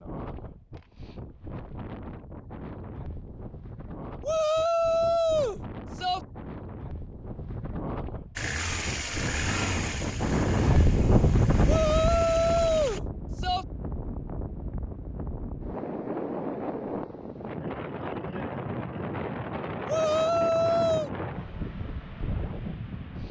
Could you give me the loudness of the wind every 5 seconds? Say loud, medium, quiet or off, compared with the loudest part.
quiet, medium, loud, medium, medium.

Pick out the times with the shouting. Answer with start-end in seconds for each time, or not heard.
4.2-6.2, 11.7-13.7, 19.9-21.1.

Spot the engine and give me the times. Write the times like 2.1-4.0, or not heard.
8.3-13.0.